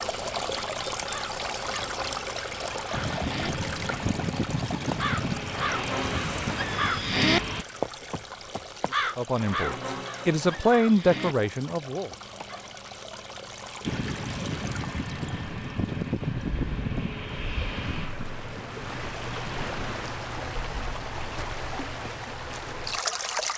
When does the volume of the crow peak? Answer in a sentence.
The loudest moment of the crow is at 7 seconds.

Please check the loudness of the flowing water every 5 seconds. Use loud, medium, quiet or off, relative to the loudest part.
loud, medium, medium, medium, loud.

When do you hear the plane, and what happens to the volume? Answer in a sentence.
You can hear the plane from 2.9 to 7.7 s, at a steady volume; and from 13.8 to 20.1 s, getting quieter.